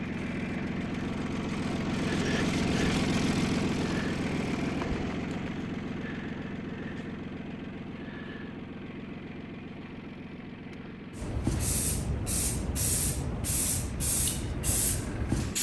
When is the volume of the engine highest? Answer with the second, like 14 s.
3 s.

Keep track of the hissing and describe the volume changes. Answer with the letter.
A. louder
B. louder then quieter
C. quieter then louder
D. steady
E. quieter
D.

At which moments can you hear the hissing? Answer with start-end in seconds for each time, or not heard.
11.1-15.5.